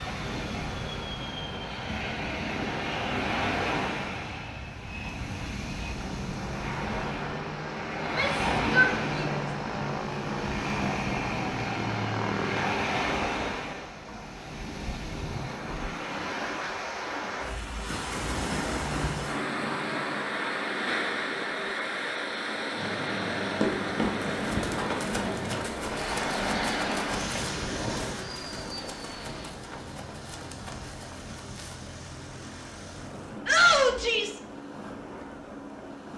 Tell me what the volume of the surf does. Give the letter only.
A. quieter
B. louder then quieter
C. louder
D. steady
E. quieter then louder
A.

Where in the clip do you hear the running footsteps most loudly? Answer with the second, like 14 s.
24 s.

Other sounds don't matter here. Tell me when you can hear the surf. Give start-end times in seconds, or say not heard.
0.0-36.1.